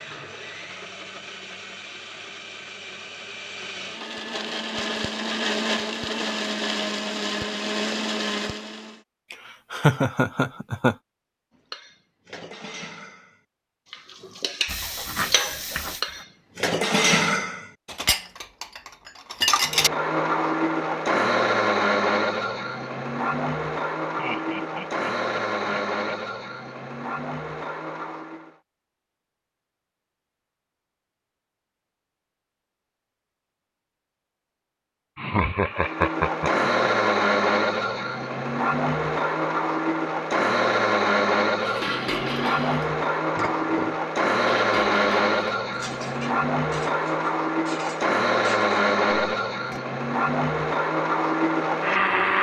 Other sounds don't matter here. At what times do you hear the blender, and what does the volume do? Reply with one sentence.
The blender can be heard from 0.0 to 9.0 s, getting louder; from 19.6 to 28.6 s, getting quieter; and from 35.7 to 52.3 s, at a steady volume.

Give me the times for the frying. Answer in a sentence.
The frying can be heard from 14.7 to 16.2 s.